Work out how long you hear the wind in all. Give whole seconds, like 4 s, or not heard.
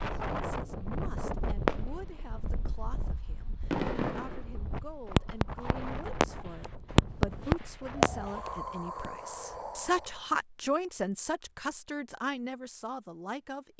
10 s.